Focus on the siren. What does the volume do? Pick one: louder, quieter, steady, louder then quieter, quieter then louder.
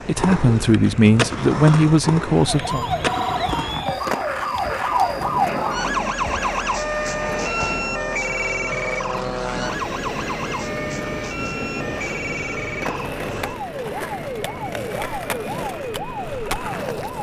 quieter.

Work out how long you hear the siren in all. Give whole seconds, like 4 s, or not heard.
15 s.